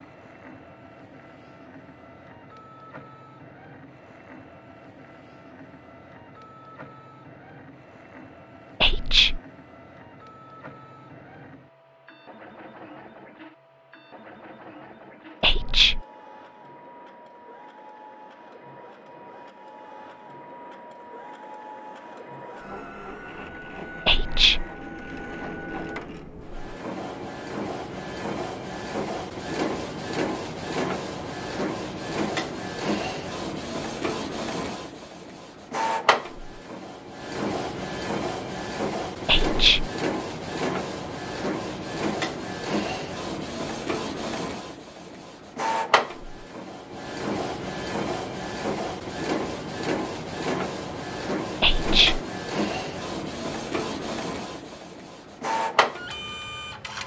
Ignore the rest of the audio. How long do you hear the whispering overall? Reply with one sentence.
The whispering can be heard for 3 seconds in total.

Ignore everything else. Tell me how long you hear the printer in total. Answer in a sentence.
The printer can be heard for 57 seconds in total.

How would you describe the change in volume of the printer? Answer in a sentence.
The volume of the printer goes up.